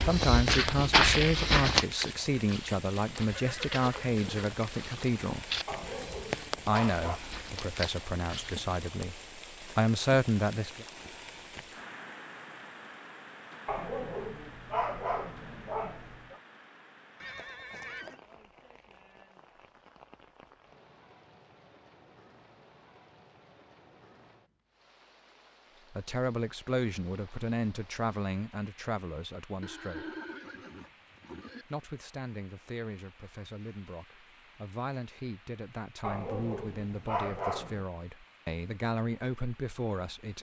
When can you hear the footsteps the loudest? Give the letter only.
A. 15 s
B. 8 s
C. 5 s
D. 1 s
D.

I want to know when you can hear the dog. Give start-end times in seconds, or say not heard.
5.7-7.2, 13.7-16.4, 36.0-37.9.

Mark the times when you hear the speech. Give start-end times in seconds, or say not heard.
0.0-5.5, 6.7-10.8, 25.9-30.1, 31.6-40.3.